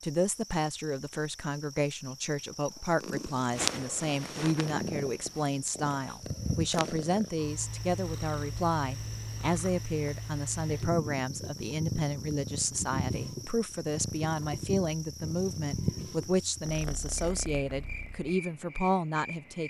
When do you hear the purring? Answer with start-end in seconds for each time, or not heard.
2.9-18.3.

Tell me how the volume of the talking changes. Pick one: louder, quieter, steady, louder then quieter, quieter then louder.
steady.